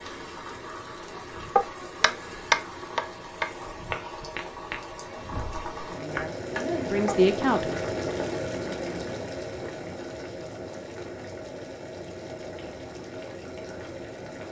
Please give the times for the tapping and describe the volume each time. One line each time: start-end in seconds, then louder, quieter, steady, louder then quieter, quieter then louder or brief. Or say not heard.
1.6-7.2 quieter then louder.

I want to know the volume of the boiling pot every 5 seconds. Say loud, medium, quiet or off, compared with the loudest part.
medium, loud, medium.